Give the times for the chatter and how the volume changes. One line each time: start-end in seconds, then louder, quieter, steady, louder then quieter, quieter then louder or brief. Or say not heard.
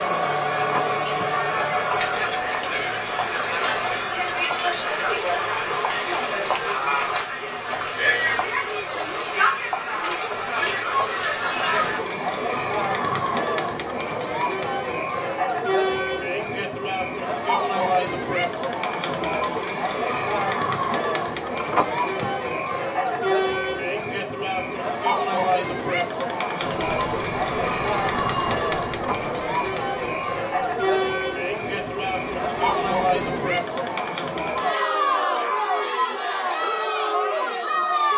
0.0-38.1 steady.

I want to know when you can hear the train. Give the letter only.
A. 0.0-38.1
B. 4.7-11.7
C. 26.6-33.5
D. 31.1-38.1
C.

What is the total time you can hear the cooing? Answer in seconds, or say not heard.
not heard.